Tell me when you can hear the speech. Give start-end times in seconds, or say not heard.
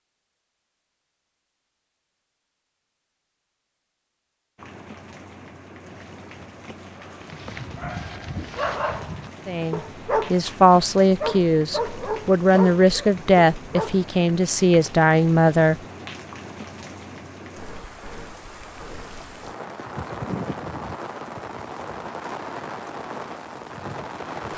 9.4-15.8.